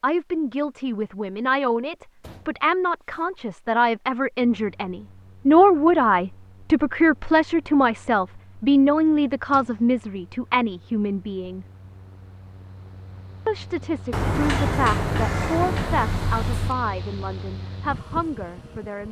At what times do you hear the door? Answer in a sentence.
The door can be heard from 2.2 to 3.3 s, from 9.4 to 9.9 s and from 14.1 to 16.8 s.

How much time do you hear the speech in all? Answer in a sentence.
The speech can be heard for 17 seconds in total.